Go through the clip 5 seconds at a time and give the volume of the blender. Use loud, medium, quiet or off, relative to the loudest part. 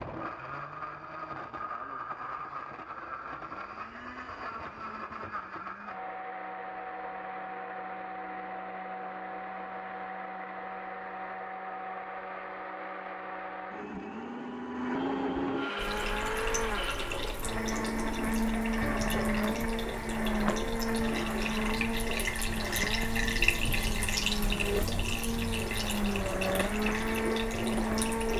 medium, medium, medium, loud, loud, loud.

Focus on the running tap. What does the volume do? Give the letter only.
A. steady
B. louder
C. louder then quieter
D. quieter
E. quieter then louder
C.